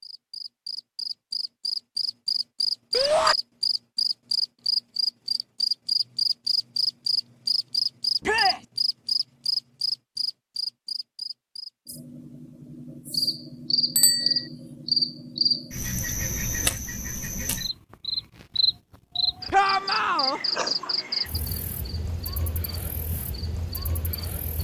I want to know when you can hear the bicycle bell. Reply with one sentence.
The bicycle bell can be heard from 13.9 to 14.4 s.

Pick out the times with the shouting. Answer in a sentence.
The shouting can be heard from 2.9 to 3.4 s, from 8.2 to 8.7 s and from 19.5 to 20.4 s.